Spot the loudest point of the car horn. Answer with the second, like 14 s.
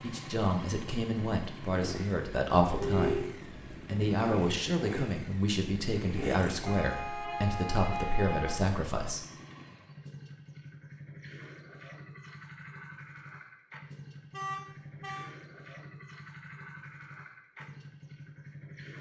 3 s.